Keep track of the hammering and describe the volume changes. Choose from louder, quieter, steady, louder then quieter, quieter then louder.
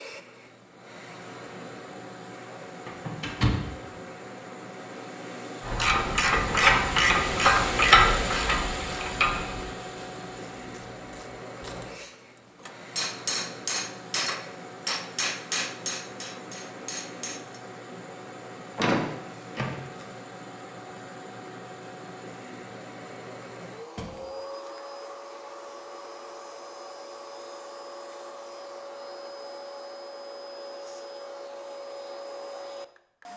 quieter.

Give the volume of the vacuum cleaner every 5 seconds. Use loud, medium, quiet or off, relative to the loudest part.
medium, loud, medium, medium, medium, medium, medium.